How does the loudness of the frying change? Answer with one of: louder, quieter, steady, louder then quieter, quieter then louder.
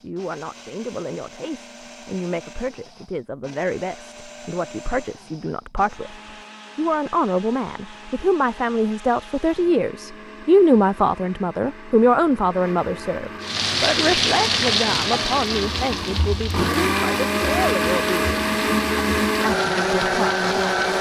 quieter.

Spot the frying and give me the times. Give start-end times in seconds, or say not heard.
13.4-20.9.